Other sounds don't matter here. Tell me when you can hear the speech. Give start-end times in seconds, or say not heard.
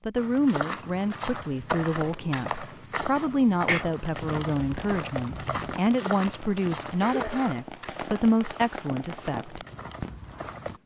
0.1-9.6.